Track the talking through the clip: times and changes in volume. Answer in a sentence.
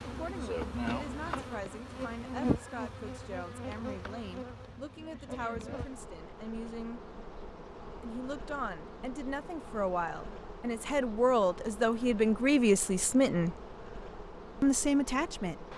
You can hear the talking from 0.0 to 7.0 s, at a steady volume; from 8.0 to 13.6 s, getting louder; and briefly from 14.6 to 15.7 s.